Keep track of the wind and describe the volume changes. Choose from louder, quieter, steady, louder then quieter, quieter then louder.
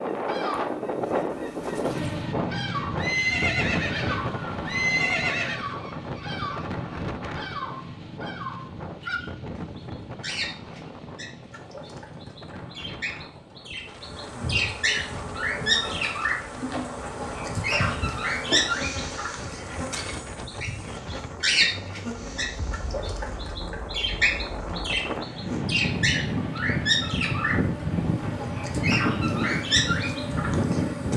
quieter then louder.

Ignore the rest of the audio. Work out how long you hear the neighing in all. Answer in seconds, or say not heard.
3 s.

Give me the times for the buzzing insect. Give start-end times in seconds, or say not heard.
0.0-2.3, 13.8-31.1.